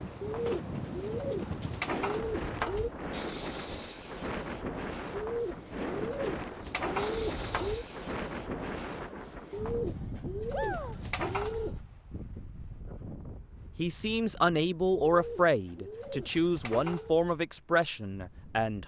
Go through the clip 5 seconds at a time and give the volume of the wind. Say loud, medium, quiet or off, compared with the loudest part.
loud, loud, medium, quiet.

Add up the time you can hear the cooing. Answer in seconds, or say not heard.
10 s.